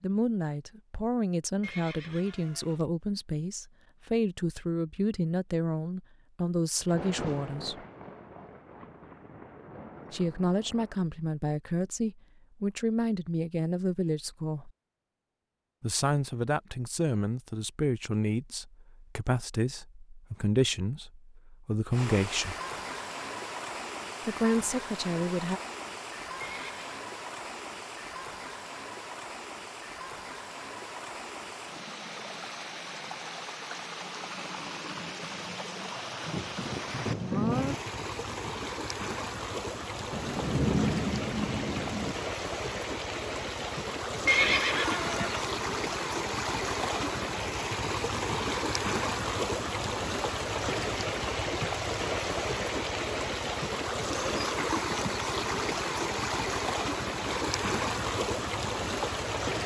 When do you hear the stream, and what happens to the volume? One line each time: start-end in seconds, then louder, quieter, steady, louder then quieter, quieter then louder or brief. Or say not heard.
21.9-59.6 louder.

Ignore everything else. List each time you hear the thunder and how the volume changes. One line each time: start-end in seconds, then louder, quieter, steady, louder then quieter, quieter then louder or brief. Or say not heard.
6.8-11.0 quieter
36.2-37.8 brief
40.1-42.1 brief.